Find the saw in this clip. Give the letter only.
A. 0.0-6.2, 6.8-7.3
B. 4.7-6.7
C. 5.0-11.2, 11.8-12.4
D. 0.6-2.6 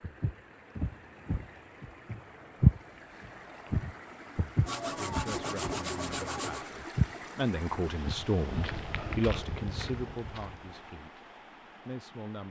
B.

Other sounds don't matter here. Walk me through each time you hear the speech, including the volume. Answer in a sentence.
The speech can be heard from 5.0 to 11.2 s, getting louder then quieter; and briefly from 11.8 to 12.4 s.